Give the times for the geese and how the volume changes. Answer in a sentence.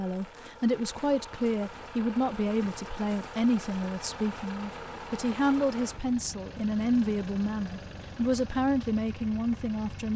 You can't hear the geese here.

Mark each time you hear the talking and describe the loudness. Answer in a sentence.
The talking can be heard from 0.0 to 10.1 s, at a steady volume.